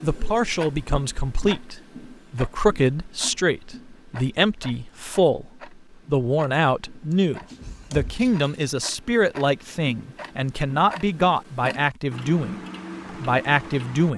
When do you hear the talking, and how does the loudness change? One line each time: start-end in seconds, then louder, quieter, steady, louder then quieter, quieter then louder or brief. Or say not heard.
0.0-14.1 steady.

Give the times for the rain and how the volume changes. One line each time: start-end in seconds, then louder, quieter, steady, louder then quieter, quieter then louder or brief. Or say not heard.
not heard.